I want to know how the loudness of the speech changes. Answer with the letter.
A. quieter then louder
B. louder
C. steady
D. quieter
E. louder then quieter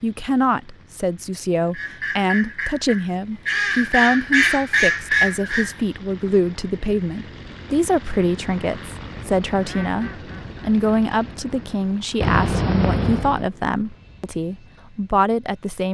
C.